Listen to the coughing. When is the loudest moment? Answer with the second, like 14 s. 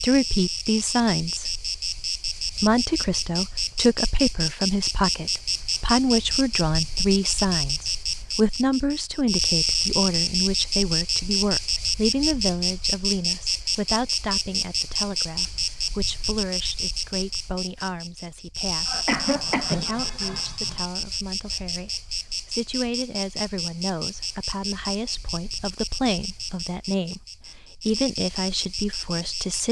19 s.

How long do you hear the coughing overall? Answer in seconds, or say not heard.
2 s.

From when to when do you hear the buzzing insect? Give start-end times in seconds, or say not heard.
0.0-29.6.